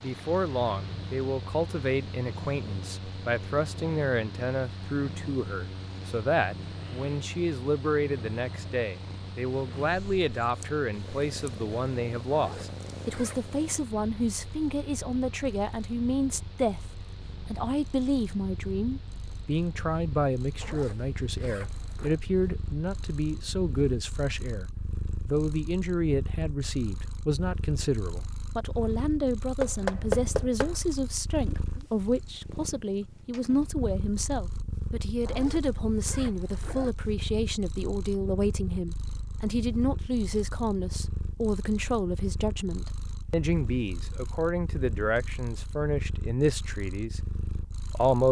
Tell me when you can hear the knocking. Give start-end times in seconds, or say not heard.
29.6-30.8.